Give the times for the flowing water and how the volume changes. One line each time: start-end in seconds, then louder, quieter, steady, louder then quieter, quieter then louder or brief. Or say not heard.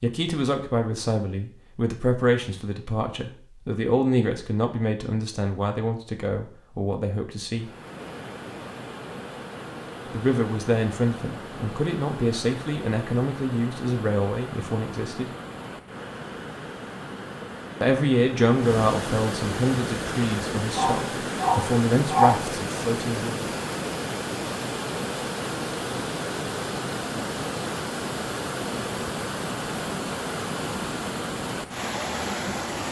7.5-32.8 louder.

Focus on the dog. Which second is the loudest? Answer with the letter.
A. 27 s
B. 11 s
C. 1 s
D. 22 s
D.